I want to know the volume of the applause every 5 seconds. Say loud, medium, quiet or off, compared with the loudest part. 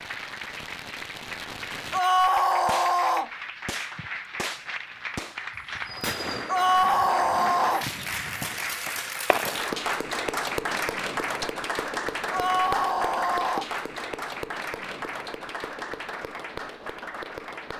medium, loud, loud, medium.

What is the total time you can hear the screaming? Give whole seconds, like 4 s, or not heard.
4 s.